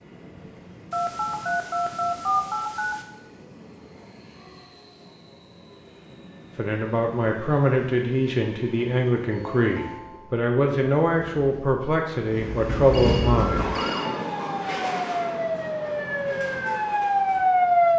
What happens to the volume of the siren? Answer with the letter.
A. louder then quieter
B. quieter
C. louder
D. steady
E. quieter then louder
C.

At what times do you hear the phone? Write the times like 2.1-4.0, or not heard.
0.9-3.0, 9.3-10.4, 12.9-14.1.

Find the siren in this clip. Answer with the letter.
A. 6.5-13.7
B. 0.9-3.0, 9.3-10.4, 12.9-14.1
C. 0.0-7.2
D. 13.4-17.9
D.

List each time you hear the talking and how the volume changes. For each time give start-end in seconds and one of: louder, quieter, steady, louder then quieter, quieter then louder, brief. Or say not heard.
6.5-13.7 steady.